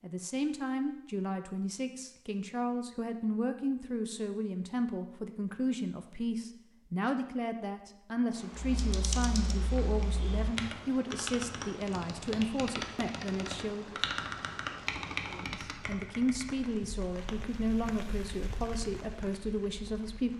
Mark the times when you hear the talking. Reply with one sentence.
You can hear the talking from 0.0 to 13.9 s and from 15.2 to 20.3 s.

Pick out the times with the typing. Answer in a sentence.
You can hear the typing from 8.5 to 16.7 s.